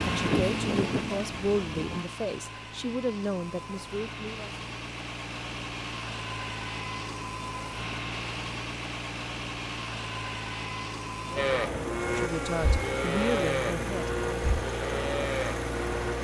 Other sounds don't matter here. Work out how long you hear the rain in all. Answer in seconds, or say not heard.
not heard.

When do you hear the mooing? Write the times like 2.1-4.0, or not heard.
0.0-2.0, 11.3-16.1.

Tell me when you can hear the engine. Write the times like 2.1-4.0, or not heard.
0.0-16.2.